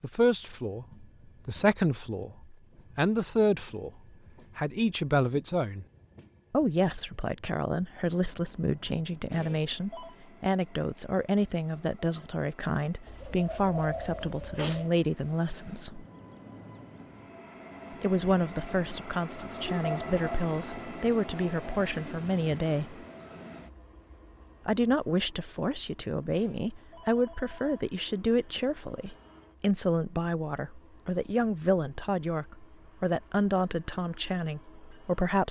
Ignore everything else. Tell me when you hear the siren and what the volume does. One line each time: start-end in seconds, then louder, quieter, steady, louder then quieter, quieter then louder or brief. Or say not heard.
not heard.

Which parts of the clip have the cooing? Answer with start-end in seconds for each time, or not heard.
13.1-14.9.